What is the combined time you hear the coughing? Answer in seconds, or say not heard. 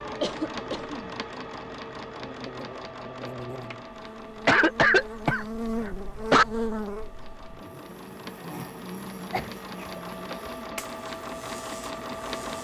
4 s.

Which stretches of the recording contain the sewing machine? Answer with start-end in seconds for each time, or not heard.
0.0-12.6.